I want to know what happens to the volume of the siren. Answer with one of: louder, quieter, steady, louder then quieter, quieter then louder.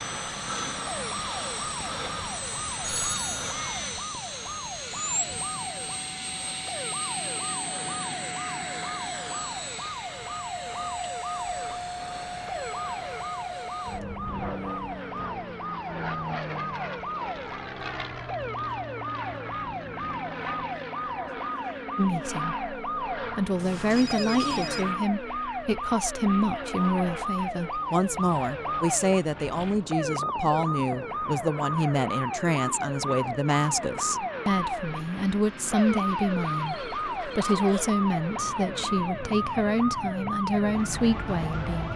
louder.